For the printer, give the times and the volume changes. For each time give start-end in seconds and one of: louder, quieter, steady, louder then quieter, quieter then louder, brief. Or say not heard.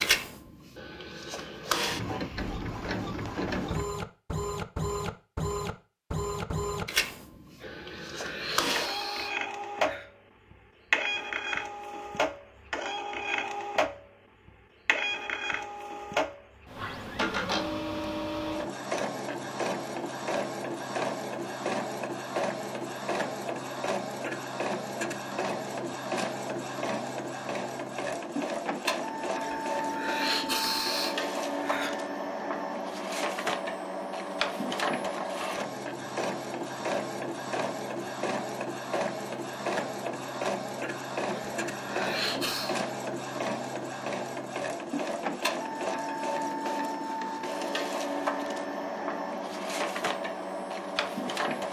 0.0-51.6 steady.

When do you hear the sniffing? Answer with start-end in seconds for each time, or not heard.
7.6-10.1, 29.4-31.9, 41.3-42.8.